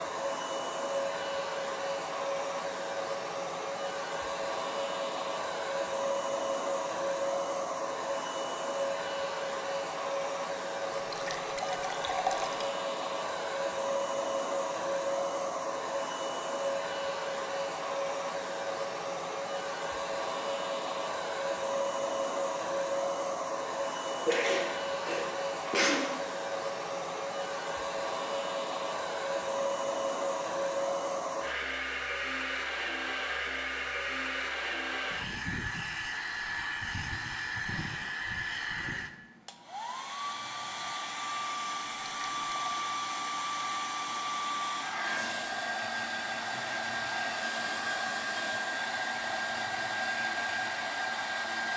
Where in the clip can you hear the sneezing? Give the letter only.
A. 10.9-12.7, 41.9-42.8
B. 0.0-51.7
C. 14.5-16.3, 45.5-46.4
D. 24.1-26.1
D.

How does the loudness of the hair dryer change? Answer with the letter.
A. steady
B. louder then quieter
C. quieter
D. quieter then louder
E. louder
A.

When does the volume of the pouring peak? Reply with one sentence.
The volume of the pouring peaks at 12 seconds.